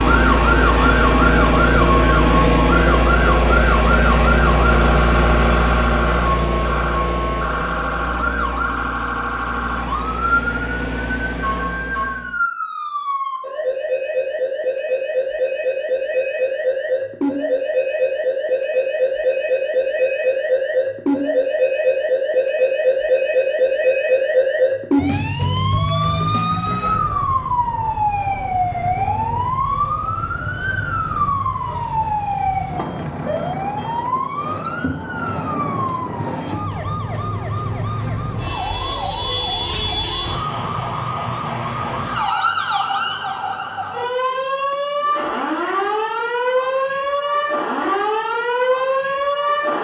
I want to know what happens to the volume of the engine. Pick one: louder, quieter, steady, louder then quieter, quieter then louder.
quieter.